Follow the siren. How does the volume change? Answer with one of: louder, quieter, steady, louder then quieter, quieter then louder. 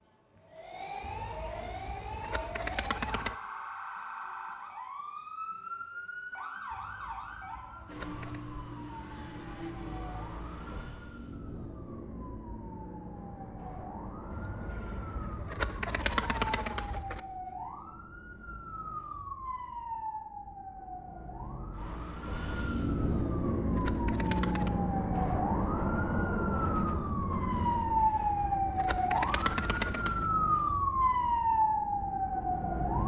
louder.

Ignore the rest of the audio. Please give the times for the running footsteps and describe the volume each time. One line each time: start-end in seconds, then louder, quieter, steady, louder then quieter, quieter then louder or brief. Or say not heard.
not heard.